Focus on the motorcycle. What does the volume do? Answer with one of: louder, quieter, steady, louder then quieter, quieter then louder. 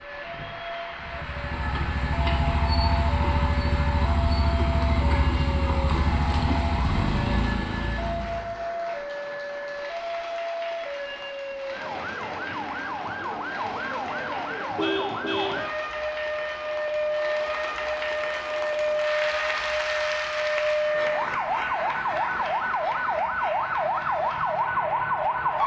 steady.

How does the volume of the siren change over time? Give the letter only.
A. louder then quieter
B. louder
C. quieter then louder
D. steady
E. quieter
B.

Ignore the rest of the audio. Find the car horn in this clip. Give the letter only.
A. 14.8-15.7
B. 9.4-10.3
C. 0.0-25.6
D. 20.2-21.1
A.